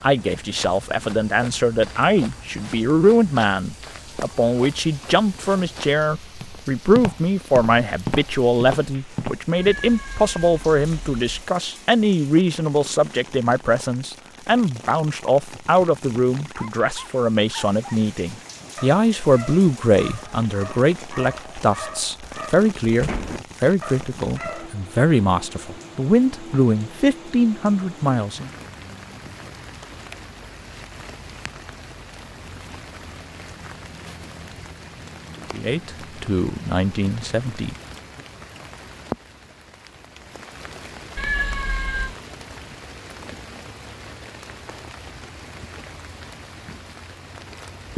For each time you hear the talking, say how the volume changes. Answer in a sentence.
The talking can be heard from 0.0 to 28.5 s, at a steady volume; and briefly from 35.5 to 37.8 s.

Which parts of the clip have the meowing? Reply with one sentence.
The meowing can be heard from 9.6 to 11.4 s and from 41.1 to 42.1 s.